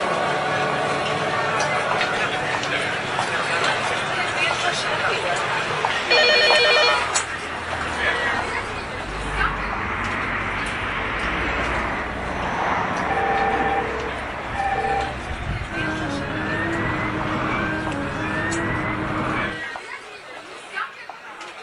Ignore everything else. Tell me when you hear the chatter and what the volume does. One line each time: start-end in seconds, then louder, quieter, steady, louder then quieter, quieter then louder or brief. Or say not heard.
0.0-21.5 quieter.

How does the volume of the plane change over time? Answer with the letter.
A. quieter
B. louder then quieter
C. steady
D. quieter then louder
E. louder
E.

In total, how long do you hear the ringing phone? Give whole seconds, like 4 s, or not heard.
3 s.